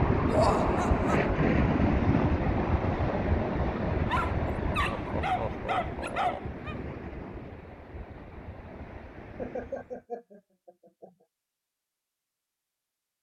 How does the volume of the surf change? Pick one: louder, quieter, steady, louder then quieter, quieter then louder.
quieter.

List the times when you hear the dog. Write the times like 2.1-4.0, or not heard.
4.0-6.8.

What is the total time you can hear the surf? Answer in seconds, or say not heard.
10 s.